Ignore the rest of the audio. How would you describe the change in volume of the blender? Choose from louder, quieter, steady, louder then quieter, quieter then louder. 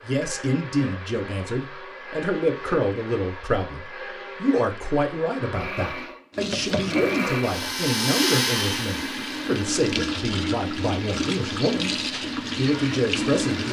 louder then quieter.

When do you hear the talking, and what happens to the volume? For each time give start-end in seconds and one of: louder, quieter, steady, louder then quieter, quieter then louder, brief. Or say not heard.
0.0-13.6 steady.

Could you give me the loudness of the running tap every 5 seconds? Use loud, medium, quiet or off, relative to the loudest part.
off, loud, loud.